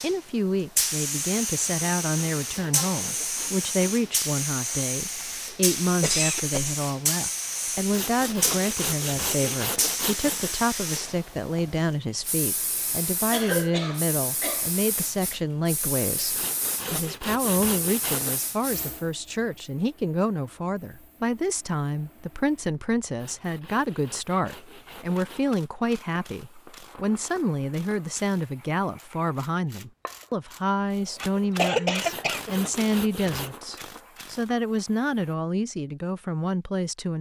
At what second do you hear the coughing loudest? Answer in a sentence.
The volume of the coughing peaks at 32 seconds.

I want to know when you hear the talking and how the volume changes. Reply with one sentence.
The talking can be heard from 0.0 to 37.1 s, at a steady volume.